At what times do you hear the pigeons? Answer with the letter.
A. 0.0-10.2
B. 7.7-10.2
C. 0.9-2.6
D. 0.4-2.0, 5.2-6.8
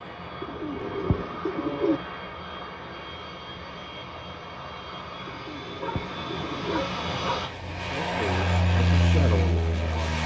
D.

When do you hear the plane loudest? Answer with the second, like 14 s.
9 s.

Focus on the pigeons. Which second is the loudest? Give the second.
2 s.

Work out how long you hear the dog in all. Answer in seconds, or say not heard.
2 s.